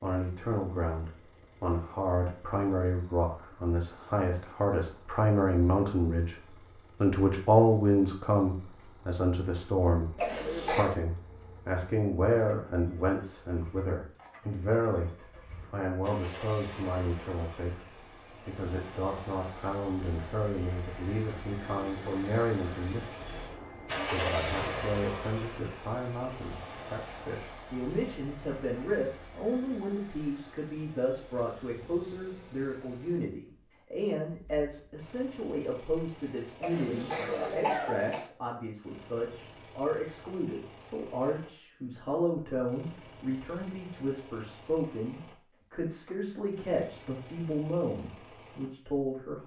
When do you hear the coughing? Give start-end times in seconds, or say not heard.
10.2-10.9, 36.6-38.3.